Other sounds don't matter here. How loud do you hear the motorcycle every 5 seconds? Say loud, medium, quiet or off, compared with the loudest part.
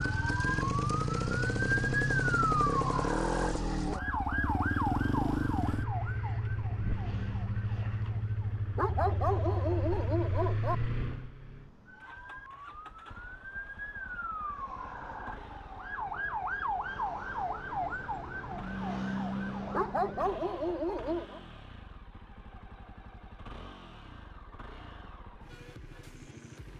loud, loud, medium, quiet, quiet, quiet.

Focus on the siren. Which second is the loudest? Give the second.
2 s.